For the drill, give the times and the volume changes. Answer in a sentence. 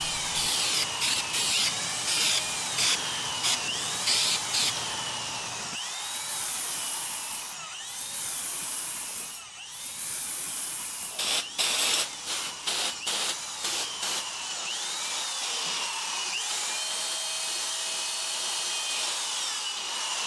You can hear the drill from 0.0 to 20.2 s, getting quieter then louder.